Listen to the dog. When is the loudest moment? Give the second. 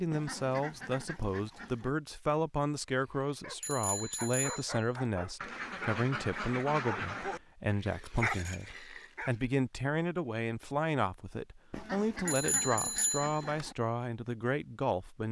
8 s.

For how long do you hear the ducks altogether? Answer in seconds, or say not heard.
6 s.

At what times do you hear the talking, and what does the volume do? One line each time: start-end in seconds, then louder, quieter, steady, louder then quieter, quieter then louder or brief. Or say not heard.
0.0-15.2 steady.